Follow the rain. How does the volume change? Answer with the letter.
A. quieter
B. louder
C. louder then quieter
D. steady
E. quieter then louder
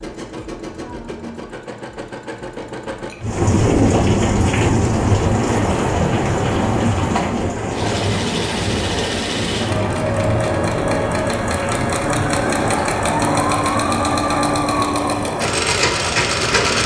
A.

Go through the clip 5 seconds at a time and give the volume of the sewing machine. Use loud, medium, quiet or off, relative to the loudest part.
quiet, medium, loud, loud.